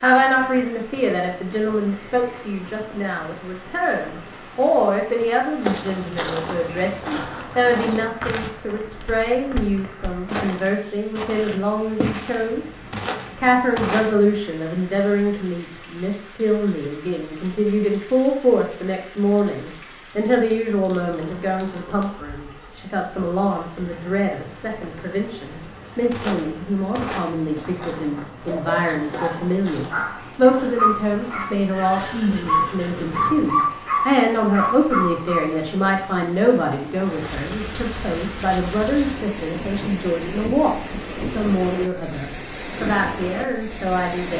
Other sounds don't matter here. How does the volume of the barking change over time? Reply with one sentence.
The loudness of the barking goes up.